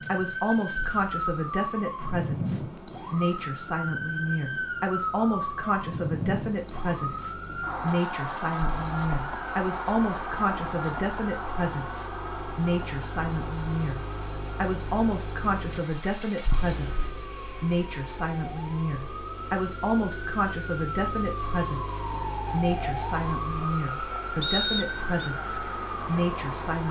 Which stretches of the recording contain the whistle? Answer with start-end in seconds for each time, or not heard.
24.4-25.2.